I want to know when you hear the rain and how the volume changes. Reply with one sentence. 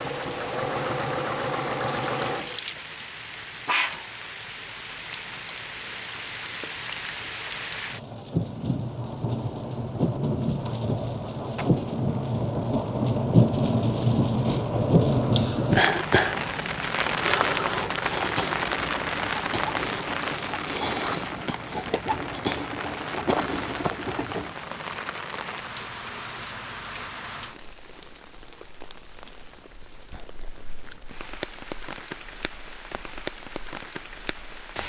The rain can be heard from 0.0 to 34.8 s, getting louder then quieter.